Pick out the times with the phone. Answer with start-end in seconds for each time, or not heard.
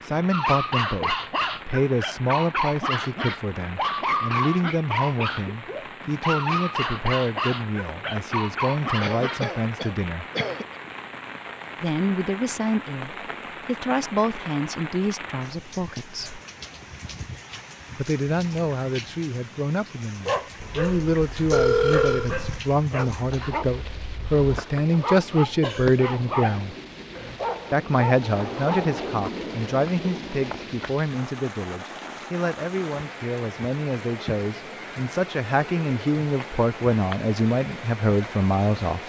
21.5-22.3.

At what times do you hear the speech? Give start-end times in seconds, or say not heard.
0.0-10.2, 11.8-16.4, 17.9-26.8, 27.7-39.0.